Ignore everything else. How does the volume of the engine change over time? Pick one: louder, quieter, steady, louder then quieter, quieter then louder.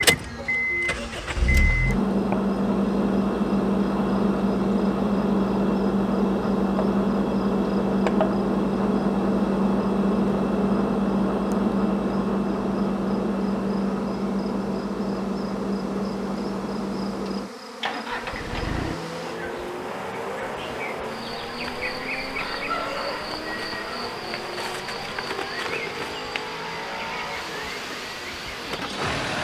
quieter.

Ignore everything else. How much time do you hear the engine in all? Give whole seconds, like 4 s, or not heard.
29 s.